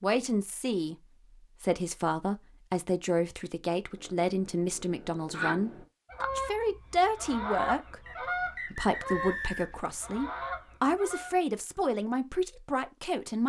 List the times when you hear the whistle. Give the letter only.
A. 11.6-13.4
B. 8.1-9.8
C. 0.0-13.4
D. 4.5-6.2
B.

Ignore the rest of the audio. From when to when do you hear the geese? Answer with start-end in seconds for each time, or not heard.
4.0-11.3.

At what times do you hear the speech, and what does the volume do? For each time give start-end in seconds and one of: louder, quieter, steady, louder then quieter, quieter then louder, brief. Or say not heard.
0.0-13.4 steady.